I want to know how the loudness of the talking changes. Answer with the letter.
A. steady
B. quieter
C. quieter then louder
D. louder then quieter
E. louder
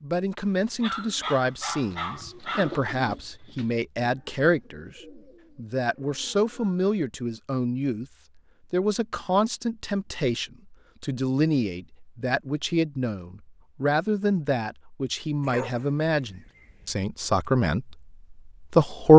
E.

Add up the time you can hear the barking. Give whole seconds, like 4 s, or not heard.
4 s.